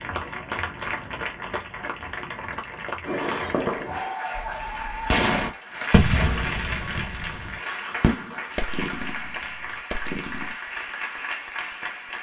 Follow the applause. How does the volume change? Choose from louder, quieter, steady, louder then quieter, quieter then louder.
steady.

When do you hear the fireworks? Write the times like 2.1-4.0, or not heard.
3.0-10.6.